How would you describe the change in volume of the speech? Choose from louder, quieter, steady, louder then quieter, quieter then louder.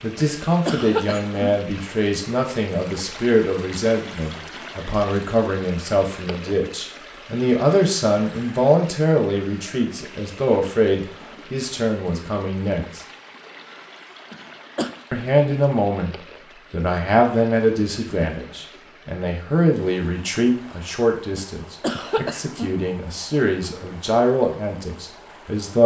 steady.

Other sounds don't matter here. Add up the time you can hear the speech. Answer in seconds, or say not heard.
24 s.